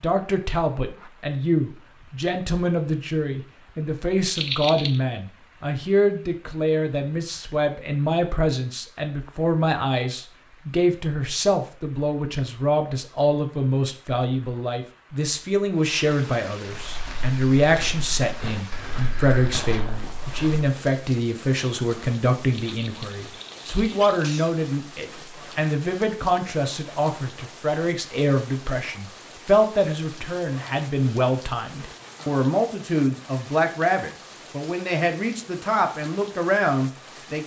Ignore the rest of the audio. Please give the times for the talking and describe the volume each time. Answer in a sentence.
You can hear the talking from 0.0 to 37.4 s, at a steady volume.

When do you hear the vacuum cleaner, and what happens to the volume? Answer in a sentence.
You can't hear the vacuum cleaner here.